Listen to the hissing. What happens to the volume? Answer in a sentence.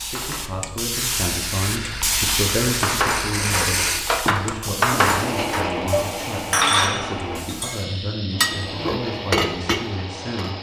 The loudness of the hissing goes down.